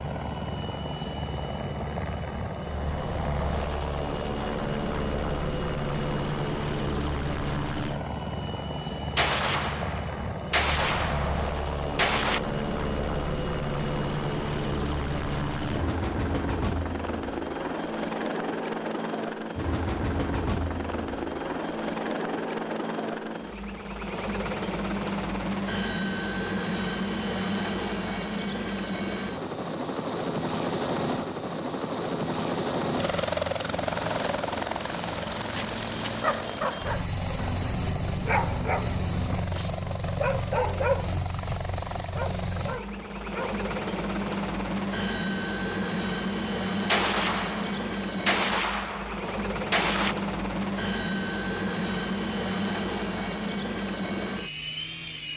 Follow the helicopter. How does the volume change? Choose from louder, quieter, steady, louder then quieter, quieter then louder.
steady.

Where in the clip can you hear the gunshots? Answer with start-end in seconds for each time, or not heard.
9.2-12.4, 46.9-50.1.